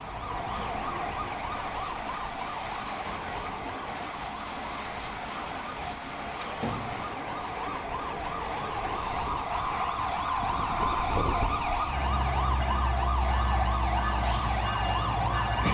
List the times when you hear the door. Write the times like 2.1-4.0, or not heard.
6.2-7.2.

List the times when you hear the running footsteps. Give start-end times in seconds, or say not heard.
not heard.